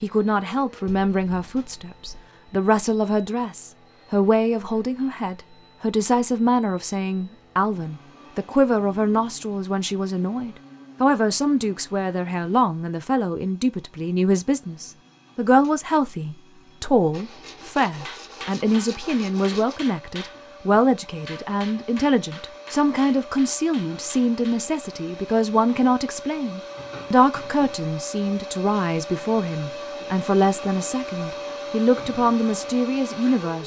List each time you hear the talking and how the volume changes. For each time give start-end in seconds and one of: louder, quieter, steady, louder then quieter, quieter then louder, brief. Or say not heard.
0.0-33.6 steady.